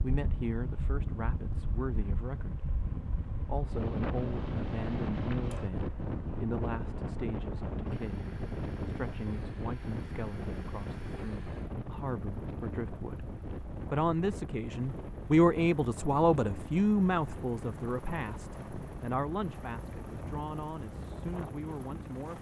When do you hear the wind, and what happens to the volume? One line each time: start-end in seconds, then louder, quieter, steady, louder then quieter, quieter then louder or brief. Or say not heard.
0.0-22.3 quieter.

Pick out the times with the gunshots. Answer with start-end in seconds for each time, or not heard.
not heard.